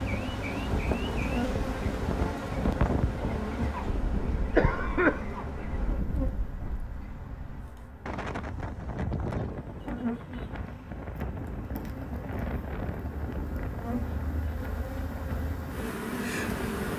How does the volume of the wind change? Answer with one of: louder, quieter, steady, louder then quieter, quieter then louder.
quieter.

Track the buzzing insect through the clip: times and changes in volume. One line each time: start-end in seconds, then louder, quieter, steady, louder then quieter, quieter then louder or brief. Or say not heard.
0.0-16.9 quieter then louder.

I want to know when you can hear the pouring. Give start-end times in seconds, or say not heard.
not heard.